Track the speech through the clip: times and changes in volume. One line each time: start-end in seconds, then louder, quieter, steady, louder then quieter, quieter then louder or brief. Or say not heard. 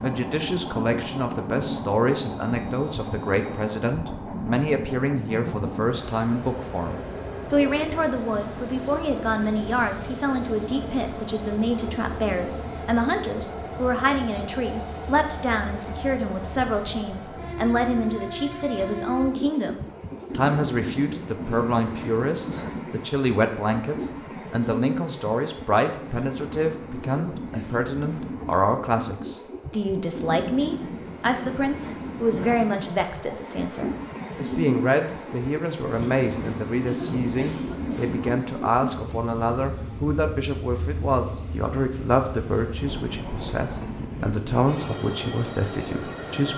0.0-46.5 steady.